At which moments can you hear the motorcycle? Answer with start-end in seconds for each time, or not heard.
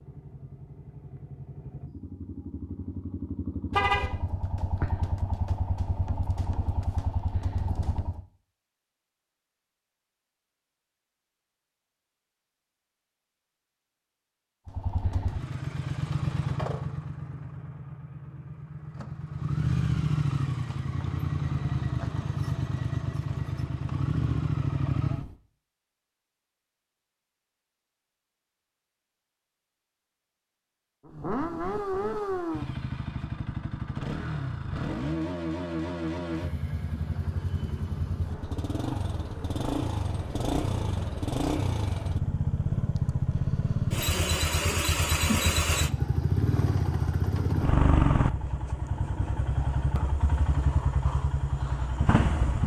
0.0-8.2, 14.7-25.4, 31.1-52.6.